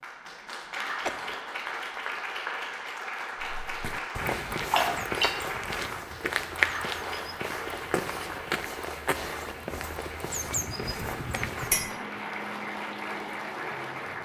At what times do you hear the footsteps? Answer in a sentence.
You can hear the footsteps from 3.4 to 11.9 s.